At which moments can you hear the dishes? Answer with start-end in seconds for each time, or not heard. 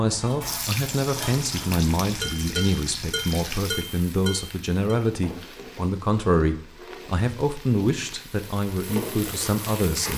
0.0-5.0.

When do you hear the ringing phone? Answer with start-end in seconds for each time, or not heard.
not heard.